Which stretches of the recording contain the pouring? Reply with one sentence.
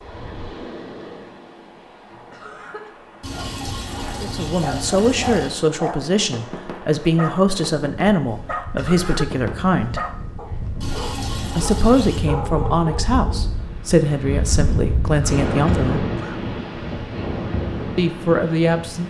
The pouring can be heard from 3.2 to 5.6 s and from 10.8 to 12.2 s.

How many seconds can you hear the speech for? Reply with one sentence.
The speech can be heard for 11 seconds in total.